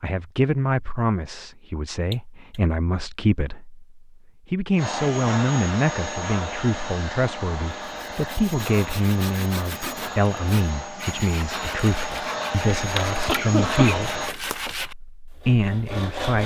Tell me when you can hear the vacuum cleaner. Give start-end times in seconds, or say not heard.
4.8-14.3.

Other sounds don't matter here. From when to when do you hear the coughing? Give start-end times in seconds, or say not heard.
2.1-2.6, 13.2-14.4.